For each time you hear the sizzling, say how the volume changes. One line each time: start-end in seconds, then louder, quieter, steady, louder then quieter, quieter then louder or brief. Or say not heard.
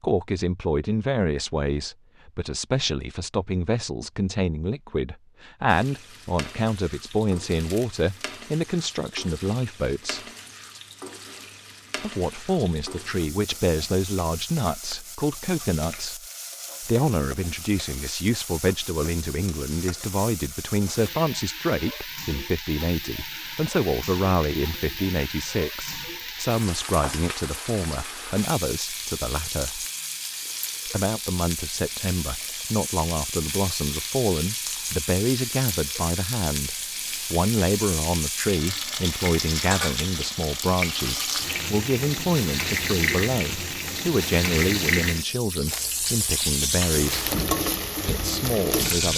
5.7-49.1 louder.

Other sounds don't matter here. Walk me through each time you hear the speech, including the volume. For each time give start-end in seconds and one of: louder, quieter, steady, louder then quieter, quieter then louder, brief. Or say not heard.
0.0-10.2 steady
12.0-29.9 steady
30.9-47.3 steady
48.0-49.1 brief.